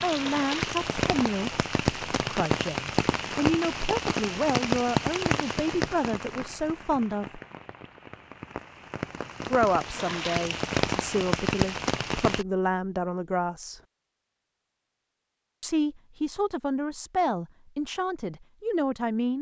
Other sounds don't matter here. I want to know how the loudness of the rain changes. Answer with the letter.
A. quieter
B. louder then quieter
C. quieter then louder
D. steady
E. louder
C.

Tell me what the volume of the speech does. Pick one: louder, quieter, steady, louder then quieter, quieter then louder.
steady.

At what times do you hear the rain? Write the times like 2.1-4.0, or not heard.
0.0-12.4.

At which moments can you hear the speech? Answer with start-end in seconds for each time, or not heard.
0.0-7.4, 9.5-13.8, 15.6-19.3.